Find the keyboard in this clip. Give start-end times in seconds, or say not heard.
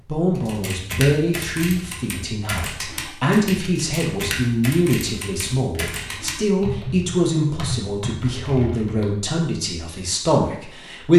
0.3-9.1.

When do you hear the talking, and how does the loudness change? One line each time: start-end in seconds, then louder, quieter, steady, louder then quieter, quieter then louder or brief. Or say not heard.
0.1-11.1 steady.